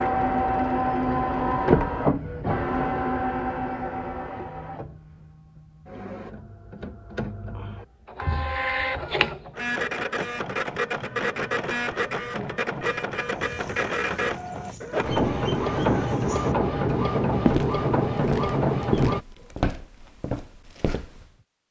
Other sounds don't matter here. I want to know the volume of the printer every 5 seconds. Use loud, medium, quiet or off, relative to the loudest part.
loud, medium, medium, loud, off.